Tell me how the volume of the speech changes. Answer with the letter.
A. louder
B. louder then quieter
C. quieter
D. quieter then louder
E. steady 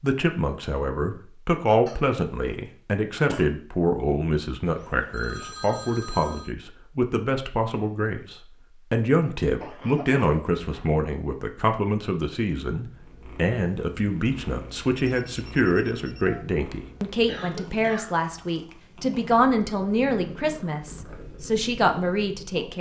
E.